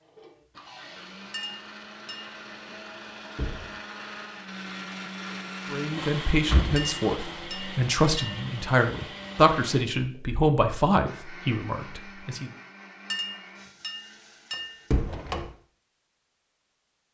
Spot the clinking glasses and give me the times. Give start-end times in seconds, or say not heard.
1.3-2.4, 6.8-8.4, 13.1-14.8.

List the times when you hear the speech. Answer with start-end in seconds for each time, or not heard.
5.7-12.5.